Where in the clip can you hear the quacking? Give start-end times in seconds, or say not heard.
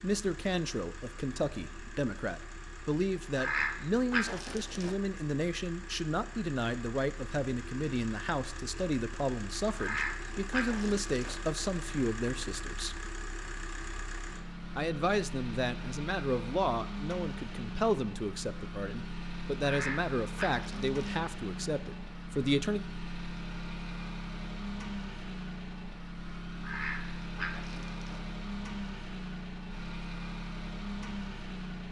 3.4-5.0, 9.8-11.3, 19.6-21.1, 26.6-28.2.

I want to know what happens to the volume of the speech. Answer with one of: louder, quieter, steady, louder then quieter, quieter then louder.
steady.